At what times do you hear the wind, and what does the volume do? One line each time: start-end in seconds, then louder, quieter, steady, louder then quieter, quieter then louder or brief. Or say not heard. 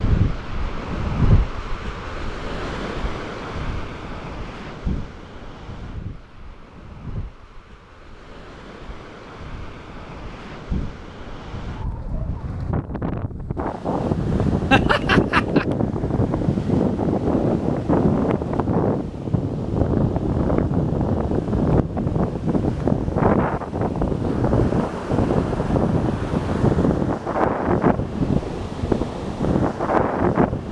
0.0-30.6 quieter then louder.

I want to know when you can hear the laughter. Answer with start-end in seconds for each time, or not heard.
14.7-15.7.